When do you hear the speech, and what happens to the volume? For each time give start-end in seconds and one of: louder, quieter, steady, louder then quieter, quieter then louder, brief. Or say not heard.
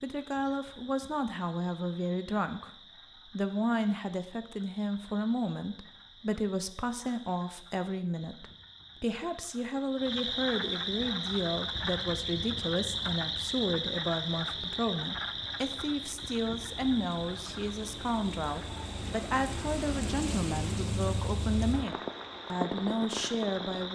0.0-23.9 steady.